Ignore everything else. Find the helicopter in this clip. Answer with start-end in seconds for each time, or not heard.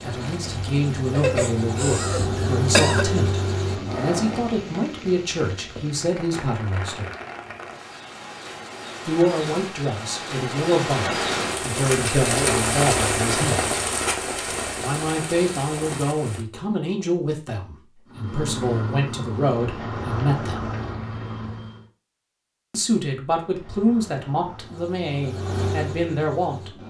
0.0-4.8, 18.1-21.9, 23.4-26.8.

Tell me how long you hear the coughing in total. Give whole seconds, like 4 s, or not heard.
2 s.